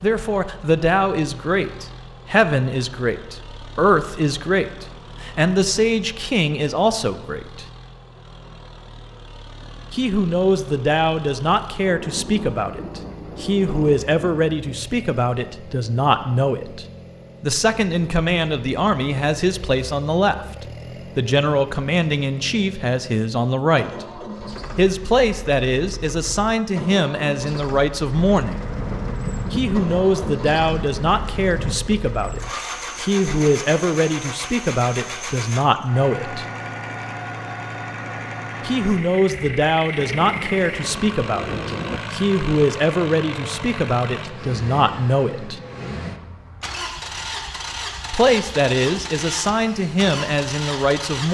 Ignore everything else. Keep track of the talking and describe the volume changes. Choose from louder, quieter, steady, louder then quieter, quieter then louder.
steady.